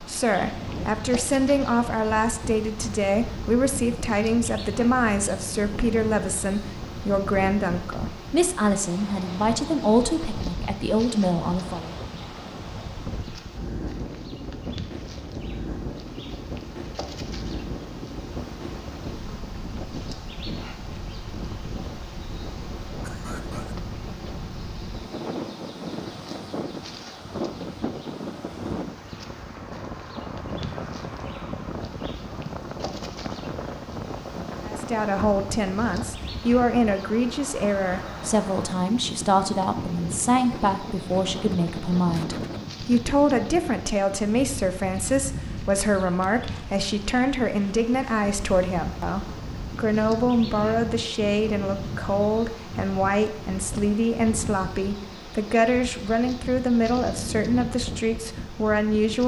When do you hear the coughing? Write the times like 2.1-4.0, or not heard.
23.0-23.8.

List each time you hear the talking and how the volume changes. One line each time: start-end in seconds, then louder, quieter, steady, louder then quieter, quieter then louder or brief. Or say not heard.
0.0-11.9 steady
34.6-59.2 steady.